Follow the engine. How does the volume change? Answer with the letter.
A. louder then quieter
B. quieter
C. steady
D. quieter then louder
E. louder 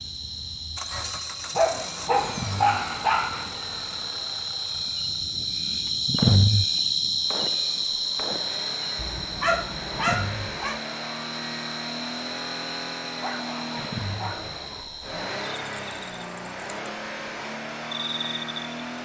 D.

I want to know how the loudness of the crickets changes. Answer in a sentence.
The volume of the crickets goes up, then down.